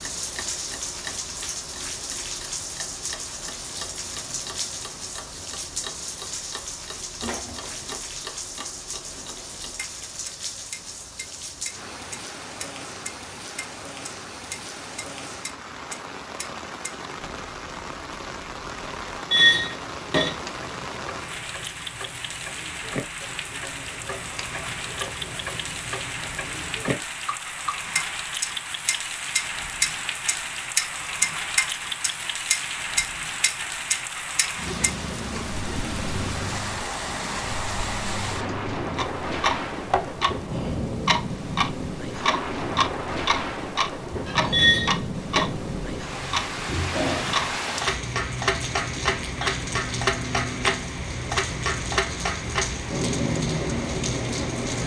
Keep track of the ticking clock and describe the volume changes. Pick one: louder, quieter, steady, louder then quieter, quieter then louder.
louder.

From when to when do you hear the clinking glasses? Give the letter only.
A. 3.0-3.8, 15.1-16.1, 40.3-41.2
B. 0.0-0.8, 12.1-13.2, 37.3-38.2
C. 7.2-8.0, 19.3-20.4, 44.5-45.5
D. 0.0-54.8
C.